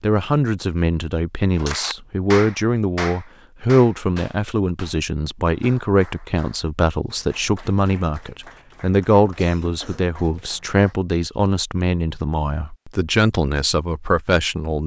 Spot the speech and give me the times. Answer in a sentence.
You can hear the speech from 0.0 to 14.8 s.